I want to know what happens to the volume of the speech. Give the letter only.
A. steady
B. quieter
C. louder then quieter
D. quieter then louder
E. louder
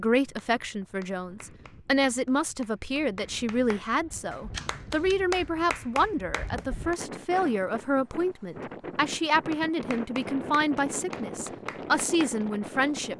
A.